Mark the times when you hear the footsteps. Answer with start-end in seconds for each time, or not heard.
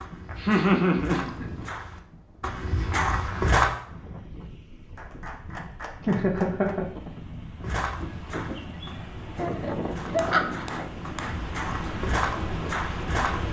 0.0-3.8, 7.6-13.4.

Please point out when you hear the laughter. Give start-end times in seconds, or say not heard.
0.1-1.4, 6.0-6.8, 9.3-10.7.